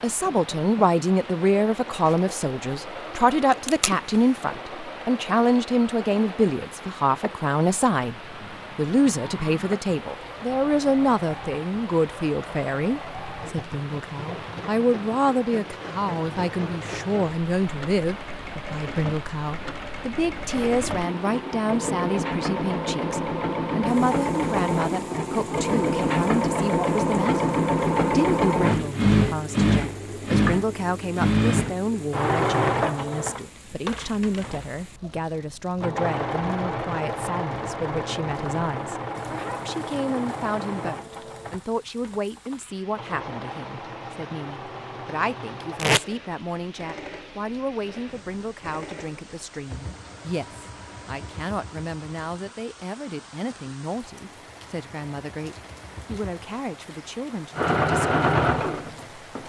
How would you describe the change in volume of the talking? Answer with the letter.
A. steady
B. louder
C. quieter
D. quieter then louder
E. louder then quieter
C.